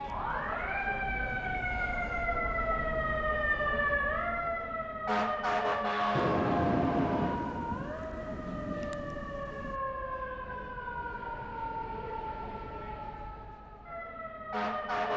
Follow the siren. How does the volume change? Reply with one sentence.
The loudness of the siren goes down.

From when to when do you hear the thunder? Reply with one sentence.
You can hear the thunder from 6.2 to 9.8 s.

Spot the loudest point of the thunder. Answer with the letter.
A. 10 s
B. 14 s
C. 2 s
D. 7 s
D.